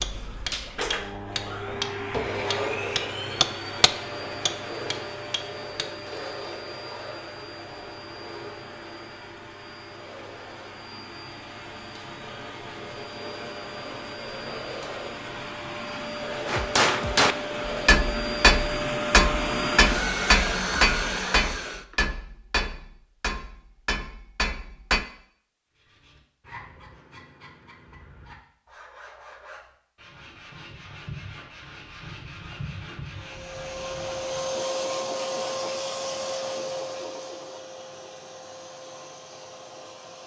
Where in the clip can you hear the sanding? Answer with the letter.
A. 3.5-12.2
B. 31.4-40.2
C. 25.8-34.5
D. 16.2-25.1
C.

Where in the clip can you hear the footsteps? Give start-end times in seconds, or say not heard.
not heard.